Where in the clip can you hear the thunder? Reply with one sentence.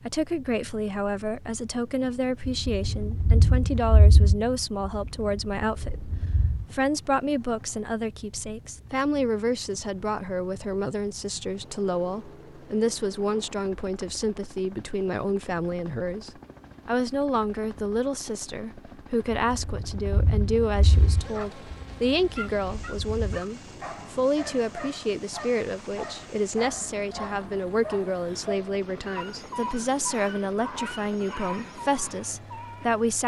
You can hear the thunder from 2.5 to 6.7 s and from 19.3 to 23.4 s.